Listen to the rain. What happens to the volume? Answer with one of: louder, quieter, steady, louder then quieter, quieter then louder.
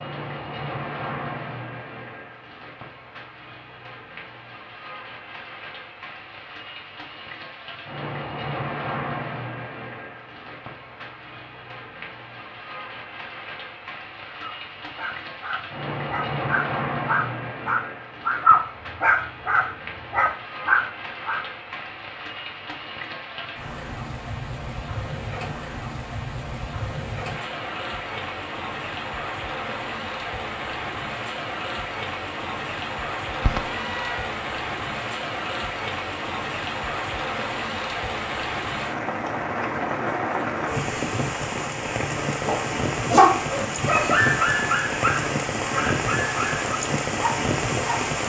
louder.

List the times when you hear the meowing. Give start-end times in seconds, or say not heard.
33.4-34.3.